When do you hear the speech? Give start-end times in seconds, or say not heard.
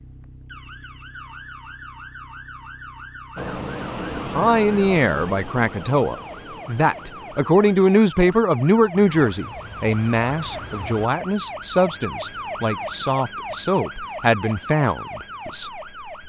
4.3-15.7.